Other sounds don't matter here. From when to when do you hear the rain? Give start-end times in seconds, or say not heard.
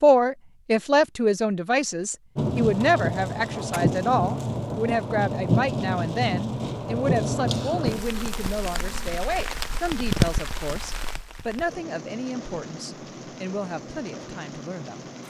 2.4-15.2.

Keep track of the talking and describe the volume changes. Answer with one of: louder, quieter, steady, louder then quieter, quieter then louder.
quieter.